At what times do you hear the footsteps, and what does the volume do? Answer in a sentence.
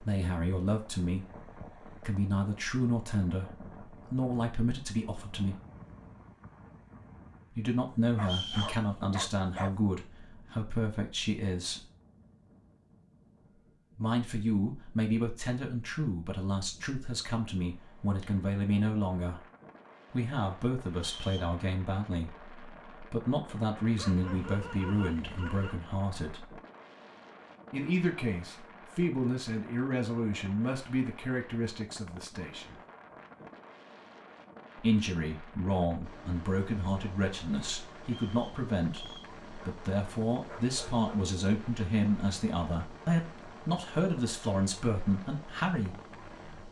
You can't hear the footsteps here.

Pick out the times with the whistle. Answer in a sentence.
The whistle can be heard from 8.2 to 8.8 s, from 21.1 to 21.6 s and from 38.0 to 39.3 s.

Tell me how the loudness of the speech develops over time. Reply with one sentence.
The volume of the speech stays about the same.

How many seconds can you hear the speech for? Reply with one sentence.
The speech can be heard for 39 seconds in total.